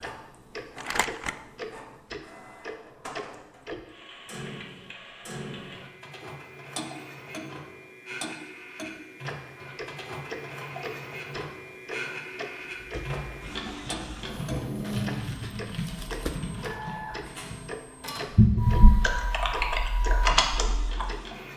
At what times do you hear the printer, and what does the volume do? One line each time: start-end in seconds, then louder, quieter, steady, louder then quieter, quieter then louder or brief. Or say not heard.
0.0-21.5 louder.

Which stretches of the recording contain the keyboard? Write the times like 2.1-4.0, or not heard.
12.8-21.1.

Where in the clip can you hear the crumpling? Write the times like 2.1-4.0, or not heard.
0.8-1.4, 14.8-16.8.